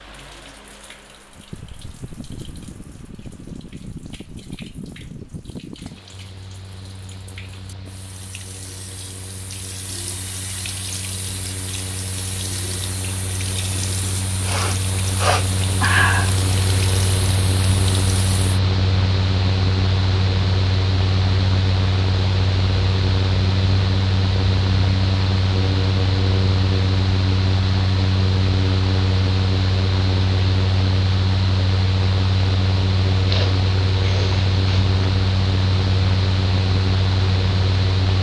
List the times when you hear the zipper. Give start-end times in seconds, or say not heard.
not heard.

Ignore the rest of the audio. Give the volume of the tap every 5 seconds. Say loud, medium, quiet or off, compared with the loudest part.
quiet, medium, loud, loud, off, off, off, off.